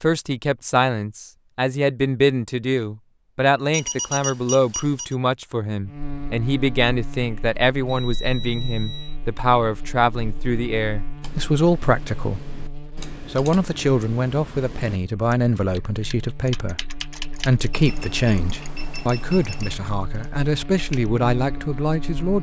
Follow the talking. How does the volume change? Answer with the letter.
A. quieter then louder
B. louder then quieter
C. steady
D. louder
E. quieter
C.